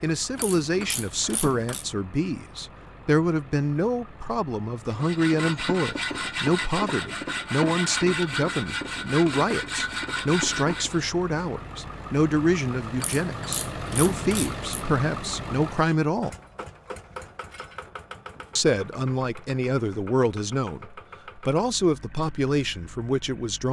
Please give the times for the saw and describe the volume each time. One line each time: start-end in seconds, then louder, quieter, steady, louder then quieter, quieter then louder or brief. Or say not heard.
4.8-11.1 steady.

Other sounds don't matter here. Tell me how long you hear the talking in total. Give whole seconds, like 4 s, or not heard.
21 s.